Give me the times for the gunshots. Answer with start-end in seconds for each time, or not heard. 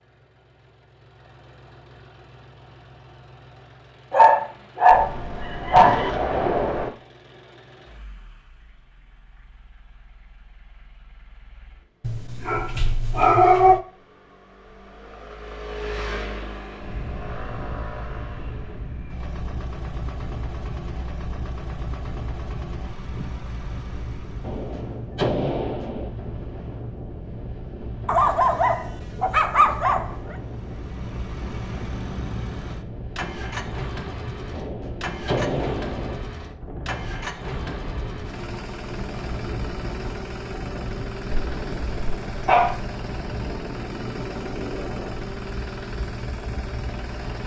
4.9-6.9, 24.4-26.1, 34.5-36.2.